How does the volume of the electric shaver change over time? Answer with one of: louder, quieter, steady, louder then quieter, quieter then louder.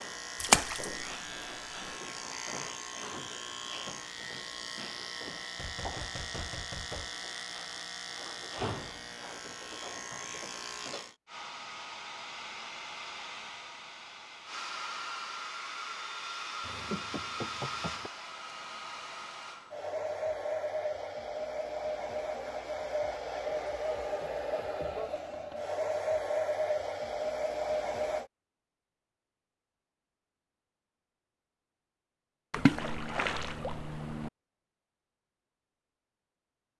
steady.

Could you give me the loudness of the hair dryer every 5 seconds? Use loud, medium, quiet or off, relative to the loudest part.
off, off, medium, medium, loud, loud, off, off.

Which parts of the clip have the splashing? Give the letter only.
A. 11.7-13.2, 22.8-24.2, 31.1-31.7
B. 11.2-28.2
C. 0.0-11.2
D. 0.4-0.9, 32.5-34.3
D.